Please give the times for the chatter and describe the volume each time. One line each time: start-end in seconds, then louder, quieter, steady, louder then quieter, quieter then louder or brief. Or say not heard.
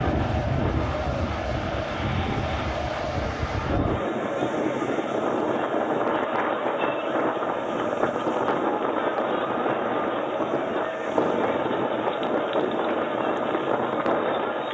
0.0-14.6 steady.